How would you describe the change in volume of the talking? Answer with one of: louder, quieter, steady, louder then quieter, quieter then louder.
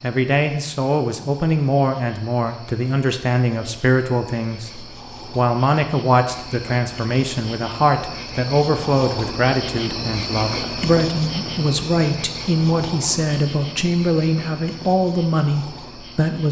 steady.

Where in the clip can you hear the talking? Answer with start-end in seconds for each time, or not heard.
0.0-16.4.